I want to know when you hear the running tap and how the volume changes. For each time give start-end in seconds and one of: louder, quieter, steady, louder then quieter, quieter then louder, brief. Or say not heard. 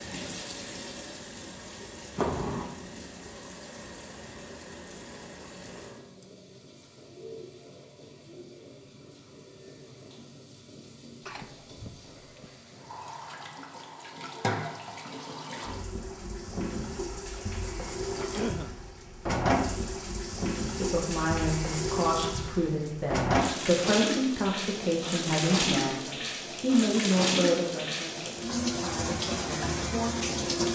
0.0-30.6 quieter then louder.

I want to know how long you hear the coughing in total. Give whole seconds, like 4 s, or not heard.
2 s.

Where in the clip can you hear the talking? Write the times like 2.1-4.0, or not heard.
20.8-30.6.